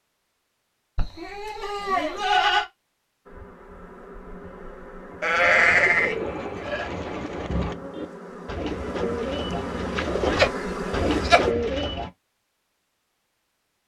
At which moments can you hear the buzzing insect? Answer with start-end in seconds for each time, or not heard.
3.2-11.6.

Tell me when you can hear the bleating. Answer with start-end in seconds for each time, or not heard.
0.9-2.6, 5.2-6.9, 10.3-11.4.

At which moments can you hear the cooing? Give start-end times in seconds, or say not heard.
5.3-12.1.